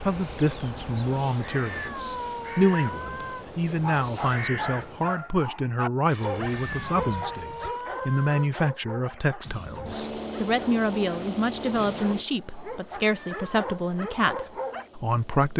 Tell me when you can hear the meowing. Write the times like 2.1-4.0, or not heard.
1.6-3.5, 6.7-8.5, 13.2-13.6.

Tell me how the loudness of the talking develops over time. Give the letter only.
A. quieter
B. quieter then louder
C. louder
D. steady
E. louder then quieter
D.